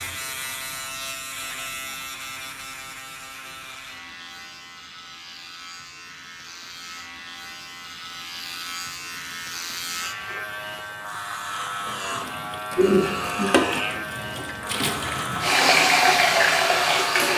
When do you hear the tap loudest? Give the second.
16 s.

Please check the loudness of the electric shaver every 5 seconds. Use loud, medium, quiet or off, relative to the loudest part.
medium, medium, loud, loud.